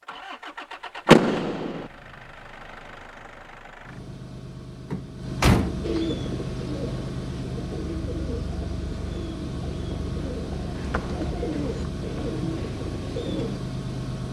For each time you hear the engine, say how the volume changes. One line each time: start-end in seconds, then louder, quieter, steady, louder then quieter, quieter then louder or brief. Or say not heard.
0.0-14.2 louder.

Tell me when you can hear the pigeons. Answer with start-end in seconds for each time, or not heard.
5.8-13.6.